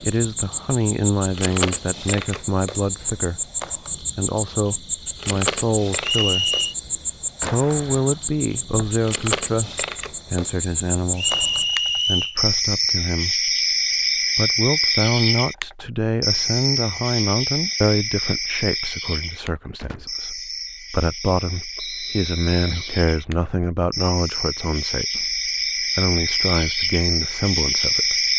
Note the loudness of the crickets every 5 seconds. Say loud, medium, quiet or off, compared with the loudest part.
loud, loud, loud, loud, medium, loud.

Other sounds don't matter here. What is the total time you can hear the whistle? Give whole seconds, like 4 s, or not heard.
3 s.